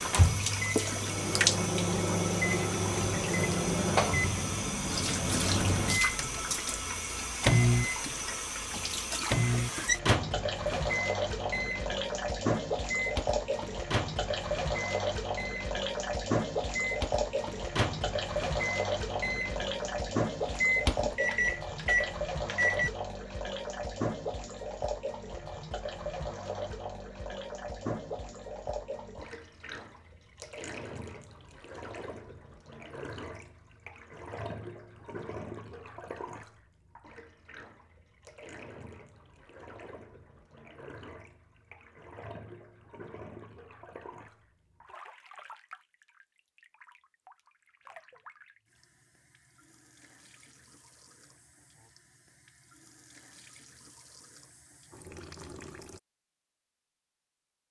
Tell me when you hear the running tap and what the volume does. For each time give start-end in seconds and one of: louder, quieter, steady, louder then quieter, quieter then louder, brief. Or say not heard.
0.0-56.0 quieter.